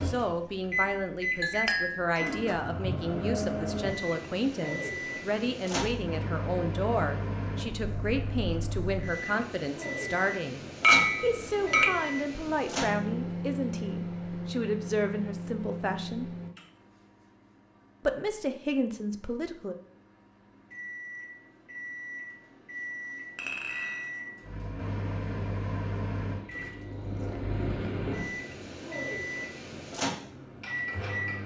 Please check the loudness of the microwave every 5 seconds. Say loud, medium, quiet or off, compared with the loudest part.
loud, loud, loud, medium, medium, loud, loud.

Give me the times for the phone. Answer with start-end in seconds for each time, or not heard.
not heard.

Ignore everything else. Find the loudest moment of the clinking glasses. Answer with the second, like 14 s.
11 s.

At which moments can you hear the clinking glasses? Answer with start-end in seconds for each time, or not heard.
1.4-2.1, 10.8-11.9, 23.4-24.1.